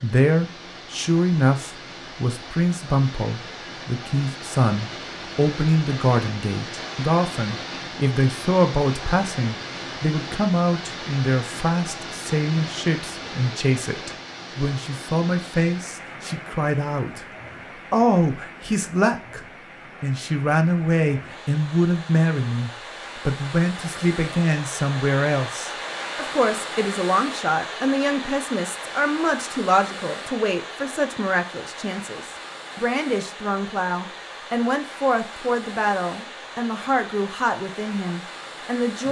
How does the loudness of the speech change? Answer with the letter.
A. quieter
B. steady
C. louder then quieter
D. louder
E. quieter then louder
B.